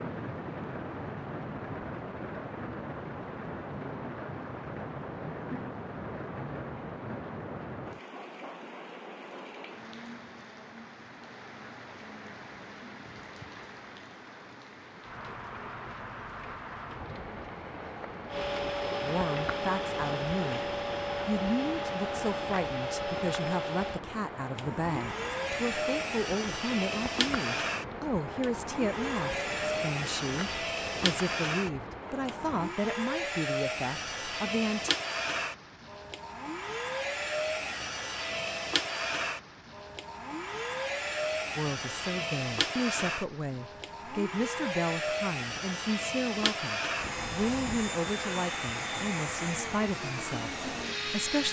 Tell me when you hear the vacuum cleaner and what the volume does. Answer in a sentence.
The vacuum cleaner can be heard from 18.2 to 51.4 s, at a steady volume.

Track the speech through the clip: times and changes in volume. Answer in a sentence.
The speech can be heard briefly from 19.0 to 20.6 s; from 21.2 to 34.9 s, at a steady volume; and from 41.5 to 51.4 s, at a steady volume.